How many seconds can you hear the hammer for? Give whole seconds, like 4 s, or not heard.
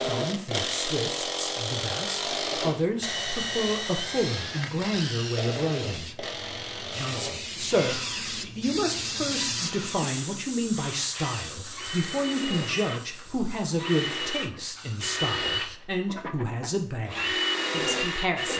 not heard.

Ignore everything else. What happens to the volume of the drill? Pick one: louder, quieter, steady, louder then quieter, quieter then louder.
quieter then louder.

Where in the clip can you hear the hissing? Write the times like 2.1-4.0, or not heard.
3.0-15.8.